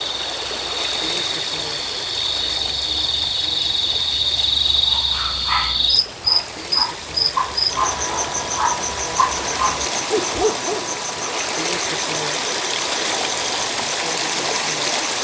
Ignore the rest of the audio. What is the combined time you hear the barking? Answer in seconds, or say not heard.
6 s.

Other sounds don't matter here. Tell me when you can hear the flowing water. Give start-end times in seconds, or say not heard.
0.0-15.1.